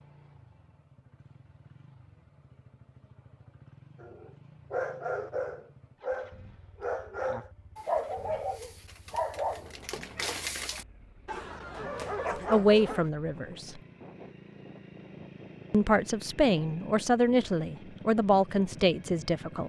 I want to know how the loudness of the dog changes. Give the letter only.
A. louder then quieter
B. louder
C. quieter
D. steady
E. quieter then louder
D.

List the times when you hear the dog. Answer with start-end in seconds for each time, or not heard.
4.0-13.1.